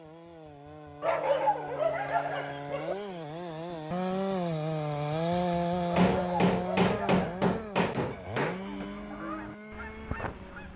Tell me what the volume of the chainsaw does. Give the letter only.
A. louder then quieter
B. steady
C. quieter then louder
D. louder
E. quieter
A.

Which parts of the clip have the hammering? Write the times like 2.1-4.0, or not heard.
6.0-8.9.